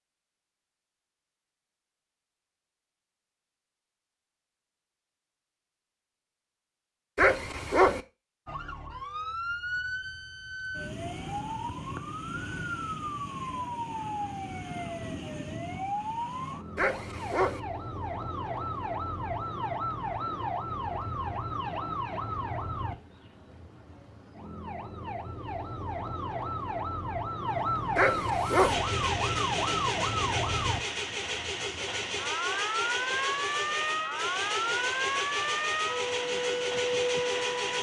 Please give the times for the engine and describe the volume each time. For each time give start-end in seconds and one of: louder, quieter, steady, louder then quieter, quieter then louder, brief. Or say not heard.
28.4-37.7 steady.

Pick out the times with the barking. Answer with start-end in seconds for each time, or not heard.
7.2-8.0, 16.8-17.6, 27.9-28.8.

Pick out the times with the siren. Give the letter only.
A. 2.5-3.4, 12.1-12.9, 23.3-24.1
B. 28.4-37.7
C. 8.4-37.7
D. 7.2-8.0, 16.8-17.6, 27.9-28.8
C.